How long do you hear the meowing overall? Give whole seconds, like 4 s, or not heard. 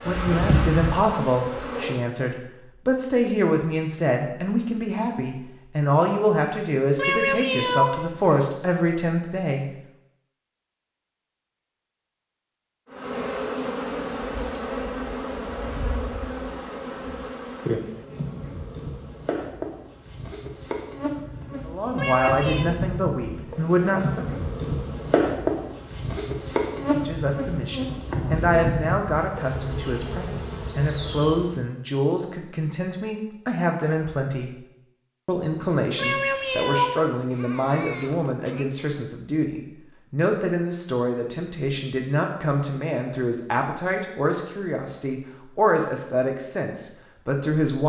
5 s.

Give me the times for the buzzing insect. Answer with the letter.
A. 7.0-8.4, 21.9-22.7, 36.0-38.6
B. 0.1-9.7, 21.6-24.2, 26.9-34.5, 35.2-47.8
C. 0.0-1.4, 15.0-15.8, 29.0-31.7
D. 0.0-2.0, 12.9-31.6
D.